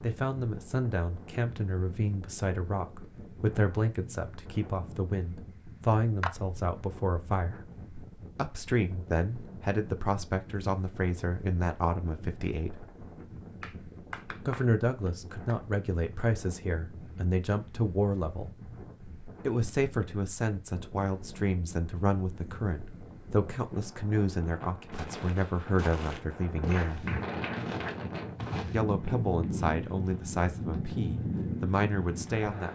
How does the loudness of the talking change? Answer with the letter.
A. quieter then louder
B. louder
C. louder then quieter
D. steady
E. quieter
D.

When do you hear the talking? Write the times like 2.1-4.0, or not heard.
0.0-7.7, 8.3-12.8, 14.4-18.6, 19.4-27.1, 28.7-32.7.